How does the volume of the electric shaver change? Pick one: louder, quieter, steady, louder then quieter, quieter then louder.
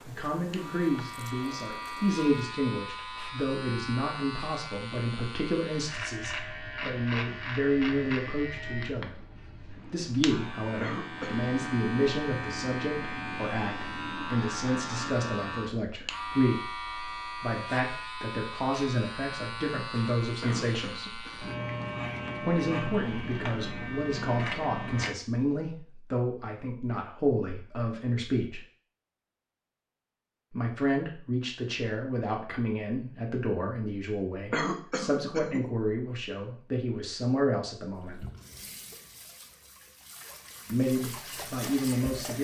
steady.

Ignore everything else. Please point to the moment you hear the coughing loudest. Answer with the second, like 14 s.
35 s.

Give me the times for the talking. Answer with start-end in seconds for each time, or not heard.
0.1-9.2, 9.8-21.2, 22.4-28.6, 30.5-38.2, 40.7-42.3.